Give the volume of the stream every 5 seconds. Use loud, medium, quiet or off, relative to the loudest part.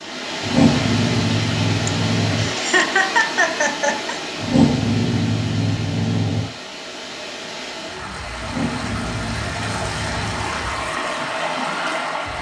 loud, medium, loud.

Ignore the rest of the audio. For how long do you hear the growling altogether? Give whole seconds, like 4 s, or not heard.
6 s.